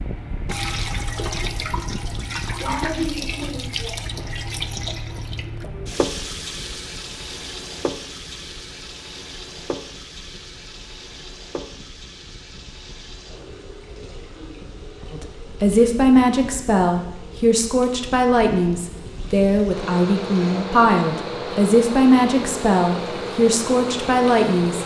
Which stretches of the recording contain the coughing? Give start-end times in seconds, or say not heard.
not heard.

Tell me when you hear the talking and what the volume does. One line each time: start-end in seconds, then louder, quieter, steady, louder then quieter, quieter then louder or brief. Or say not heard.
15.1-24.8 steady.